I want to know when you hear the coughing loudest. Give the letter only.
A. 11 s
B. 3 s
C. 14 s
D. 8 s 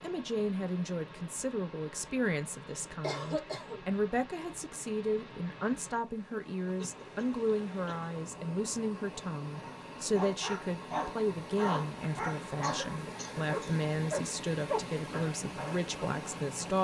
B.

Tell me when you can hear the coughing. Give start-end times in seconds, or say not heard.
3.0-3.9, 6.8-8.1, 12.6-13.8.